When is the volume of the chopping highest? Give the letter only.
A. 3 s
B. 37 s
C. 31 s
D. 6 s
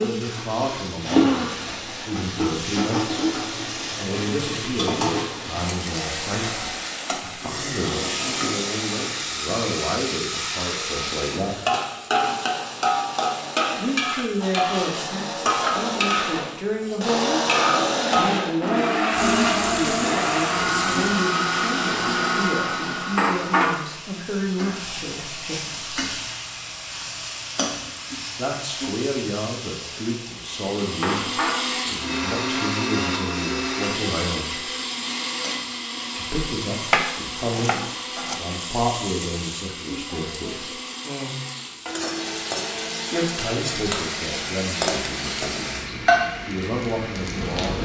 B.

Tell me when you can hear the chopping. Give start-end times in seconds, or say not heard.
36.9-38.5.